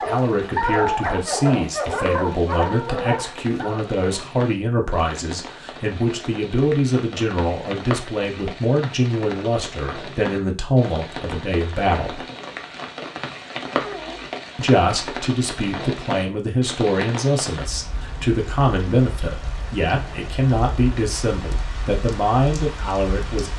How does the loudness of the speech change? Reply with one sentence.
The volume of the speech stays about the same.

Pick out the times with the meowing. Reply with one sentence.
The meowing can be heard from 13.8 to 14.3 s.